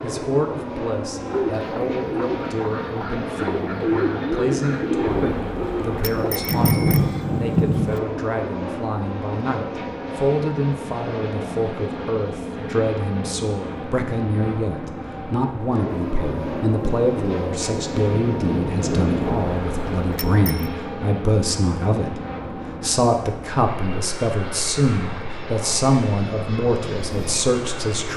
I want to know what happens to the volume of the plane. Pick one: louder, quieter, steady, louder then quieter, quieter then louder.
steady.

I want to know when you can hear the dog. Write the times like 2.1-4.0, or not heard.
not heard.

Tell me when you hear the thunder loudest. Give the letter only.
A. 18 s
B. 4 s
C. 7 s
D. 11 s
C.